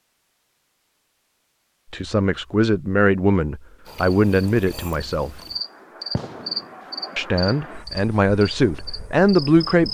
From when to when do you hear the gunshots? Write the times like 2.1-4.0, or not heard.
6.2-6.8.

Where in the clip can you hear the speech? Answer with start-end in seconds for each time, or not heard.
1.9-5.4, 7.2-9.9.